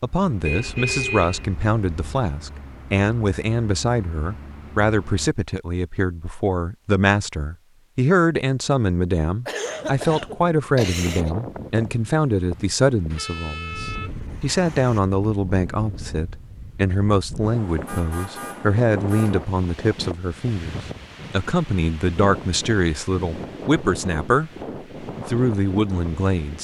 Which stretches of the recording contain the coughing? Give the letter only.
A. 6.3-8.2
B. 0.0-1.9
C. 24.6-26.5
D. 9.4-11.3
D.